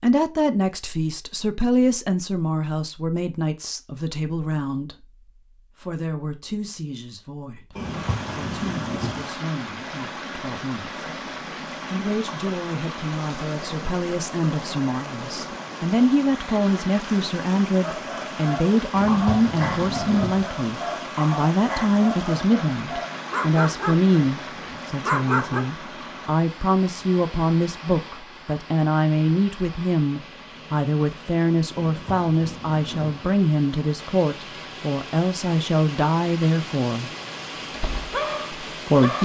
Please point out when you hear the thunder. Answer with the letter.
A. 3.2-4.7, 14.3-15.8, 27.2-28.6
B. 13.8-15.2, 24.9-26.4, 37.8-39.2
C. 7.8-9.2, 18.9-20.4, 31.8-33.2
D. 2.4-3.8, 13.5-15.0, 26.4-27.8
C.